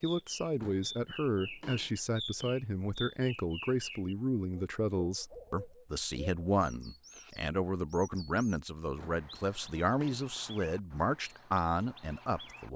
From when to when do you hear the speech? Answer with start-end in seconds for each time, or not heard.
0.0-12.7.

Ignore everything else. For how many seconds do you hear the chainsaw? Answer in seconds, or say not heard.
not heard.